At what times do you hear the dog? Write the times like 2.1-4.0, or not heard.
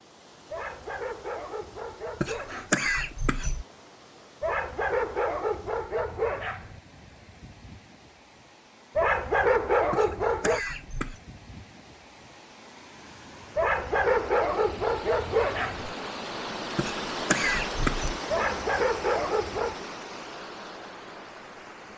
0.5-2.8, 4.4-6.8, 8.9-10.6, 13.6-15.9, 18.3-19.9.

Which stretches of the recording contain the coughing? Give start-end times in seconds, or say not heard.
2.2-3.6, 9.9-11.2, 16.8-18.2.